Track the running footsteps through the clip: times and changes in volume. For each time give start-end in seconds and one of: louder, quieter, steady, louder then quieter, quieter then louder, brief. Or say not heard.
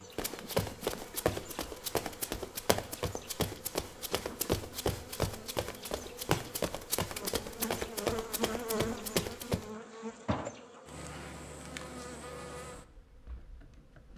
0.1-9.7 steady.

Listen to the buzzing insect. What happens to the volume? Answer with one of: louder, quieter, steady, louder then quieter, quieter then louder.
louder then quieter.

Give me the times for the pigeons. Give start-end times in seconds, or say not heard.
not heard.